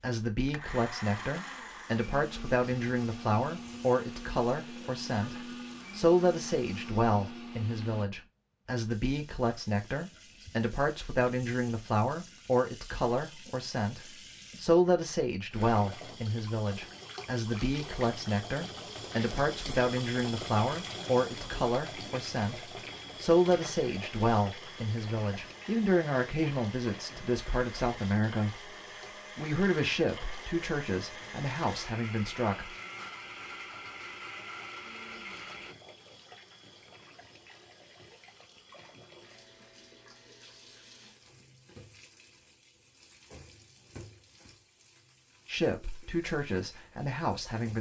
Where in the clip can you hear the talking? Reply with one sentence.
You can hear the talking from 0.0 to 28.8 s, from 29.4 to 32.8 s and from 45.5 to 47.7 s.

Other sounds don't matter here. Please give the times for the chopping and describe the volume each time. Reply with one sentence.
The chopping can't be heard in this clip.